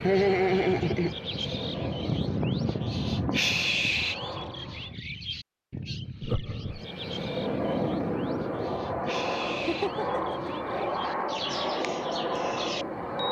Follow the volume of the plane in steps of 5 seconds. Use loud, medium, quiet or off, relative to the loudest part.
medium, loud, loud.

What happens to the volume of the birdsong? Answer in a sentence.
The volume of the birdsong goes down.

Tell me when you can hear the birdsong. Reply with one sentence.
You can hear the birdsong from 0.0 to 13.2 s.